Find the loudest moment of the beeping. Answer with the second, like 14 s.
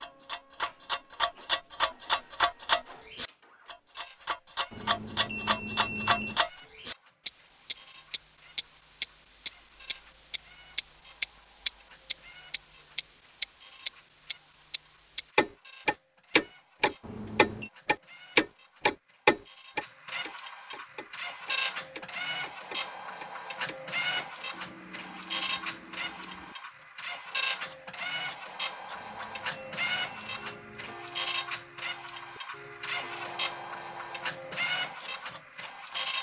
6 s.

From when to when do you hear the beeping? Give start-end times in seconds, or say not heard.
4.7-6.4, 17.0-17.7, 28.9-30.9.